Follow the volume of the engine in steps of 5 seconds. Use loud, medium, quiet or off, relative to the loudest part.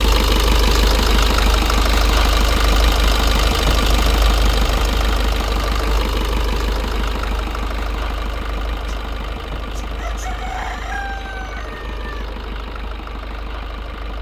loud, medium, quiet.